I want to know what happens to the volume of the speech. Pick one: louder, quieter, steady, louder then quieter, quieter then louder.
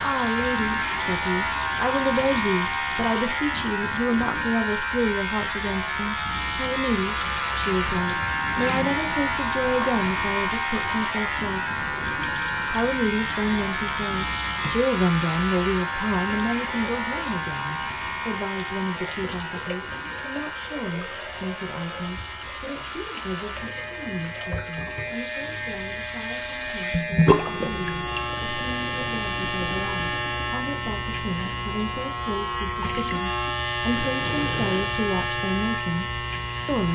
quieter then louder.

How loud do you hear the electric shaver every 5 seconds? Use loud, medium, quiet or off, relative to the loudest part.
loud, loud, loud, loud, medium, loud, loud, loud.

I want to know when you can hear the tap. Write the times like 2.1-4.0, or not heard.
0.0-36.8.